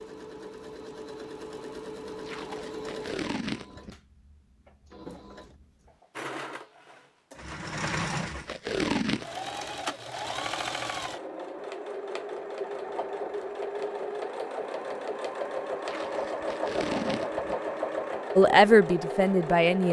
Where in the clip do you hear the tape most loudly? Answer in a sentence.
The volume of the tape peaks at 9 seconds.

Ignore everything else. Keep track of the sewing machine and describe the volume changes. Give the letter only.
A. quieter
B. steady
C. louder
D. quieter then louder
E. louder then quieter
C.